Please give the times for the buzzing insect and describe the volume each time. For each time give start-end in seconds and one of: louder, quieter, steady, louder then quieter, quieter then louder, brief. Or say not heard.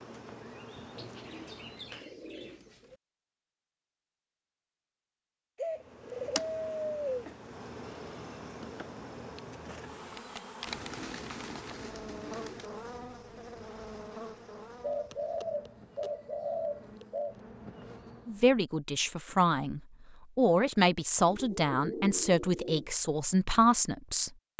0.0-2.1 brief
5.7-18.4 quieter.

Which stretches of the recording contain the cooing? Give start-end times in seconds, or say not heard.
0.9-3.0, 5.5-7.2, 10.7-12.7, 14.8-17.4, 21.2-22.9.